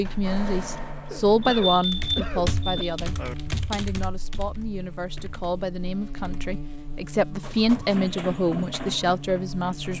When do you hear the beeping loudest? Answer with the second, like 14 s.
2 s.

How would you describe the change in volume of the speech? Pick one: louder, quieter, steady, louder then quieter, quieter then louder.
quieter then louder.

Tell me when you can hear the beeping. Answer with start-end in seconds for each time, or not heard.
1.4-3.4.